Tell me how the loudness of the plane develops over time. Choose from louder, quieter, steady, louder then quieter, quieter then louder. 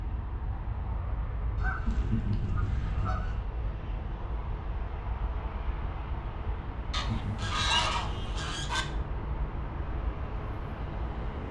steady.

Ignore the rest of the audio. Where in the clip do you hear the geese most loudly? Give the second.
8 s.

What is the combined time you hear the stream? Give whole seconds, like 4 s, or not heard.
not heard.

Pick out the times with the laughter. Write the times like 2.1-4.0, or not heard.
1.9-3.2, 6.9-7.7.